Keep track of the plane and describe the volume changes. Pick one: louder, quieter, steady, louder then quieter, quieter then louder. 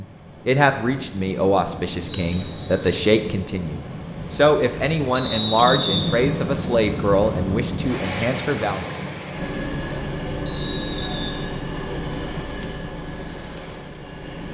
quieter.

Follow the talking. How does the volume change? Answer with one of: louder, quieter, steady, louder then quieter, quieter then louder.
steady.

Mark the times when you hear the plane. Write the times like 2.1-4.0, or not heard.
9.3-14.4.